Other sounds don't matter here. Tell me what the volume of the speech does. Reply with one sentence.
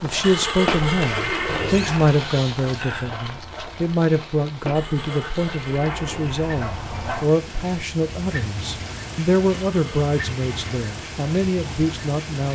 The volume of the speech stays about the same.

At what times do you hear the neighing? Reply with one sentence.
The neighing can be heard from 0.2 to 2.2 s, from 4.7 to 6.5 s and from 9.7 to 10.8 s.